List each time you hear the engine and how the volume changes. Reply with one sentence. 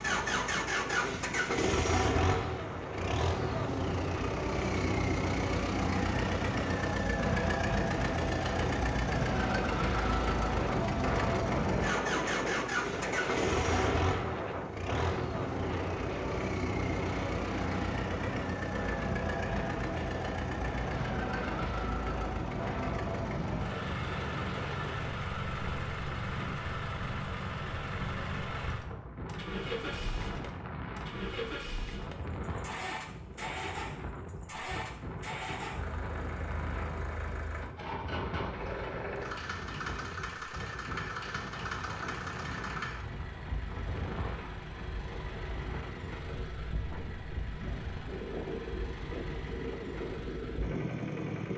The engine can be heard from 0.0 to 51.5 s, getting quieter.